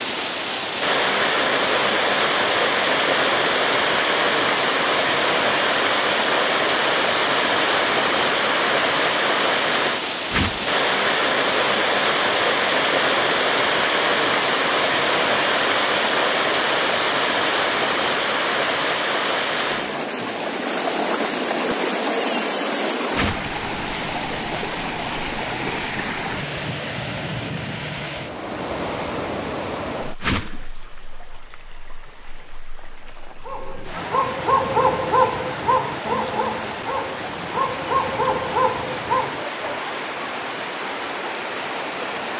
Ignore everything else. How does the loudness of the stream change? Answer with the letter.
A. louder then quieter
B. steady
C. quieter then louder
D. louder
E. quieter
E.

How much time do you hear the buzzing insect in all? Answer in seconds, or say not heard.
not heard.